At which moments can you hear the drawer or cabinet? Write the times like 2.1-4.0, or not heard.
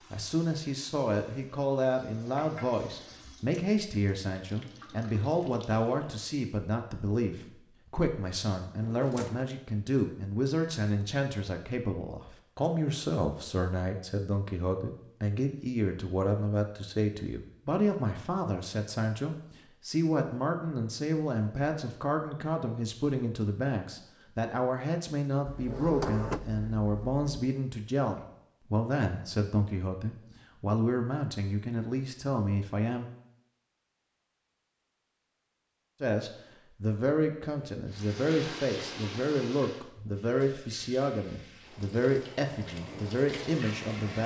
8.8-9.5, 25.4-27.2.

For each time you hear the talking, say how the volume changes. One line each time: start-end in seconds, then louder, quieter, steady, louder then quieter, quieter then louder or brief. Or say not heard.
0.1-33.0 steady
36.0-44.2 steady.